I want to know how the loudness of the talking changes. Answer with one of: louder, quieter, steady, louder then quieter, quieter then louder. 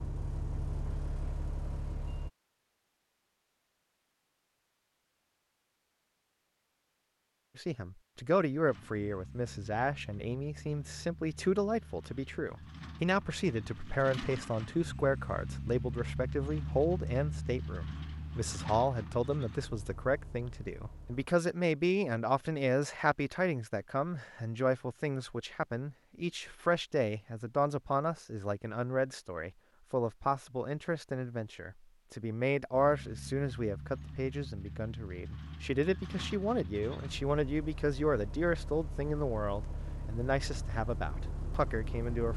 steady.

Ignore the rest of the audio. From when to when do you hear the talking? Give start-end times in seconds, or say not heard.
7.5-42.3.